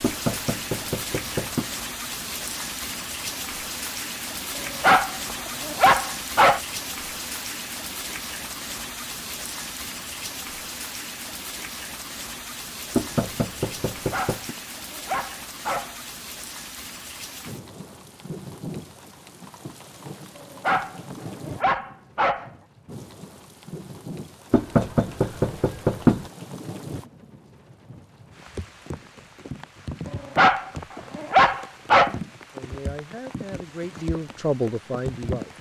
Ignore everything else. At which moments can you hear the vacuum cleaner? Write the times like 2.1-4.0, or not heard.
not heard.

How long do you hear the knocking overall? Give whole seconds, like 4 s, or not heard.
5 s.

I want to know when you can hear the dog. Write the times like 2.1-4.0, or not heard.
4.5-6.6, 13.9-15.9, 20.4-22.5, 30.1-32.1.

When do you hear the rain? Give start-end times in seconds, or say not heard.
0.0-35.5.